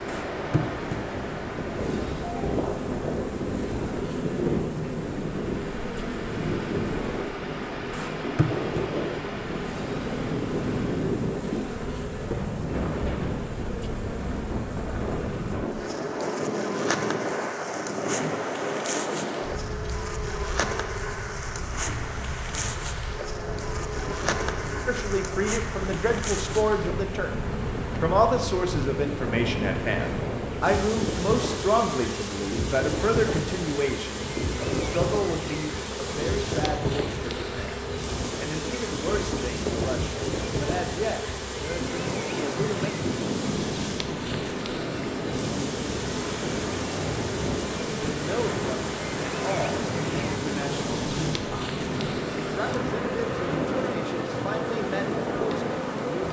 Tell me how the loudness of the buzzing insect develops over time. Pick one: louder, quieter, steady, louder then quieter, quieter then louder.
steady.